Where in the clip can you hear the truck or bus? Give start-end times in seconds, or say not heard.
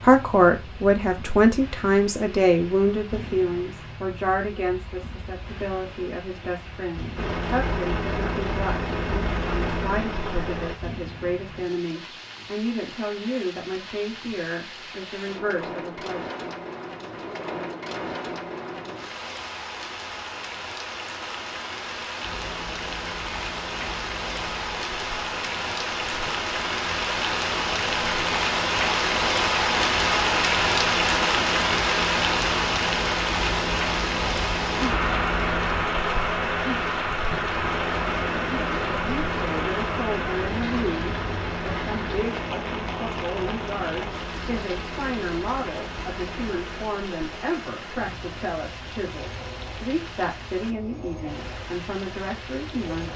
7.2-10.8, 22.2-53.1.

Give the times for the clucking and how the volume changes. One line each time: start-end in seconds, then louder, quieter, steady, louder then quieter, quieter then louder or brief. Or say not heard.
not heard.